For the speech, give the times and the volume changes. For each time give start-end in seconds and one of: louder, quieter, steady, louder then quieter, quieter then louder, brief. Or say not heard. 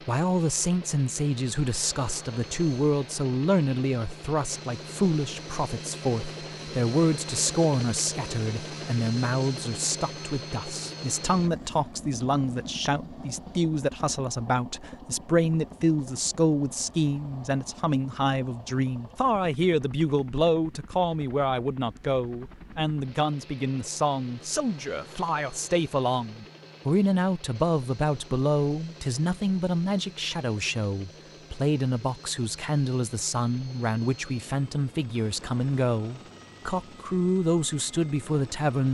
0.1-38.8 steady.